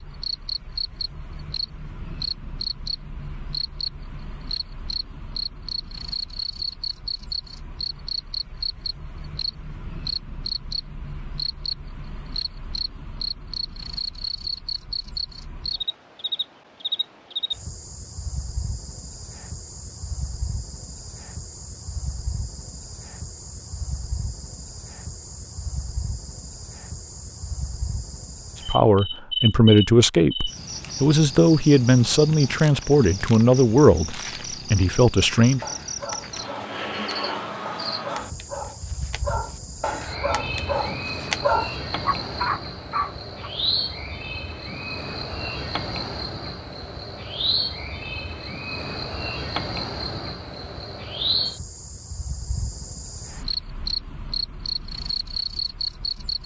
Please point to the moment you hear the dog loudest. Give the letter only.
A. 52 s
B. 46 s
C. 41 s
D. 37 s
C.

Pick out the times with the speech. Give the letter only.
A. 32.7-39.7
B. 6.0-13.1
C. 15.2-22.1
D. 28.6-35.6
D.